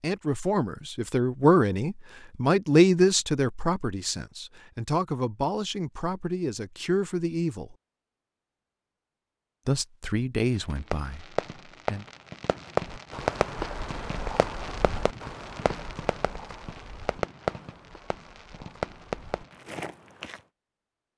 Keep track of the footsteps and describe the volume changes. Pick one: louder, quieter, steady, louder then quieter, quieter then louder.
quieter then louder.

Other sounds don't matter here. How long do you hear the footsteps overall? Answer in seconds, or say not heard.
8 s.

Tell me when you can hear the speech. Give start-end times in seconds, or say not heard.
0.0-7.8, 9.7-12.1.